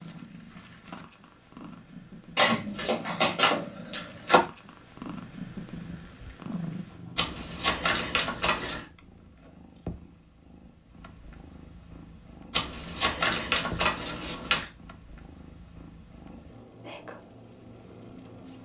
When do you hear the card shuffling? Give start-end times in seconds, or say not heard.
2.4-4.4, 7.2-8.8, 12.5-14.7.